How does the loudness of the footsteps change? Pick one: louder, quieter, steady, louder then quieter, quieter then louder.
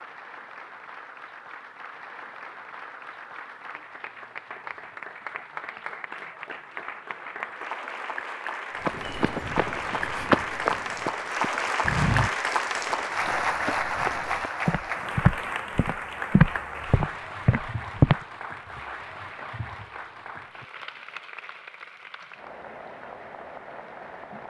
quieter then louder.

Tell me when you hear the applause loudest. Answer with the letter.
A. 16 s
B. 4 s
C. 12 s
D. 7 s
C.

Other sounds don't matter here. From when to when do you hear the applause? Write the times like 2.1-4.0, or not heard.
0.0-24.4.